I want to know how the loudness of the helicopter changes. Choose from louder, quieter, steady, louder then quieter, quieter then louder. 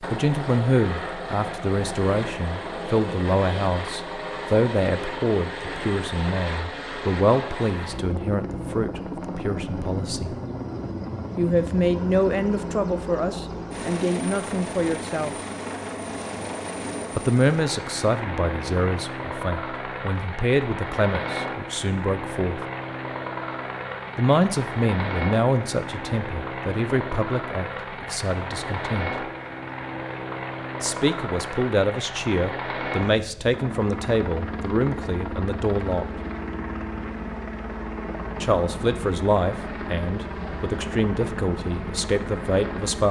steady.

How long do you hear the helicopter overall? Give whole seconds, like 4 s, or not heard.
43 s.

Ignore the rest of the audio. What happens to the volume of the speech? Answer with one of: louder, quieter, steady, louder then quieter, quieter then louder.
steady.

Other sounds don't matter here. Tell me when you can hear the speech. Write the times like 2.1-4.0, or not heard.
0.0-10.3, 11.3-15.3, 17.1-22.6, 24.1-29.1, 30.8-36.0, 38.4-43.0.